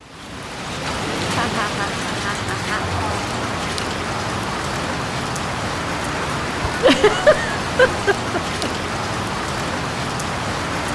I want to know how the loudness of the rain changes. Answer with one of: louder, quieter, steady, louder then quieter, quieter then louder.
steady.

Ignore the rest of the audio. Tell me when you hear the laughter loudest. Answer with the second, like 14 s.
7 s.